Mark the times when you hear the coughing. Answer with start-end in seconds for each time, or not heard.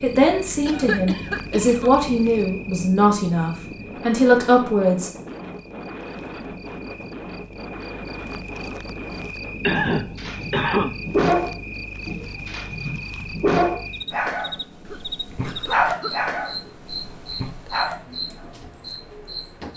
0.7-1.9, 9.6-10.9, 14.8-16.2.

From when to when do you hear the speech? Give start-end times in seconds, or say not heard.
0.0-5.1.